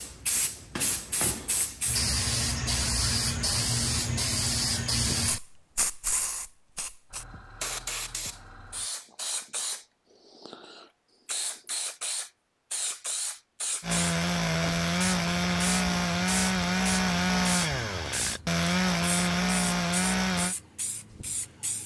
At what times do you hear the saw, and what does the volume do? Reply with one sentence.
You can hear the saw from 13.8 to 20.6 s, at a steady volume.